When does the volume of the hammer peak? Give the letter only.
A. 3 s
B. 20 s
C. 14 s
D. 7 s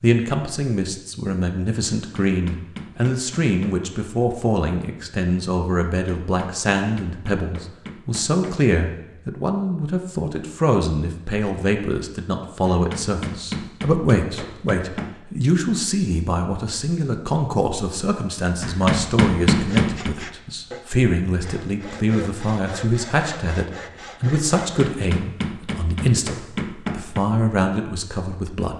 B.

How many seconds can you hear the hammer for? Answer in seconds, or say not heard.
11 s.